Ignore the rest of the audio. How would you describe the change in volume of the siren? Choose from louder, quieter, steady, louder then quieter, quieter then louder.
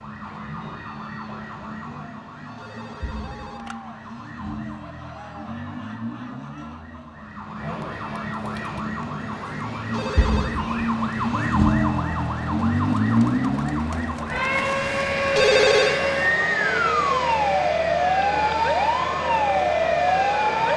louder.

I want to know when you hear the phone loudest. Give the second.
16 s.